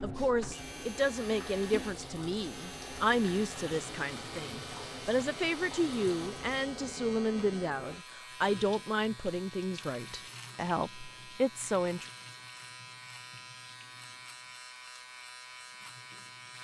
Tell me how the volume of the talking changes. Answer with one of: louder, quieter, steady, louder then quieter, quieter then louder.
steady.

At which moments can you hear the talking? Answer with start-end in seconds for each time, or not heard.
0.0-12.1.